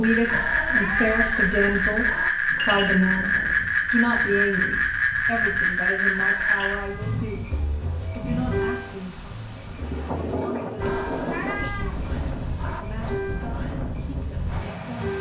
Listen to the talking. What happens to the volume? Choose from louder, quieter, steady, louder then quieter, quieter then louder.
quieter.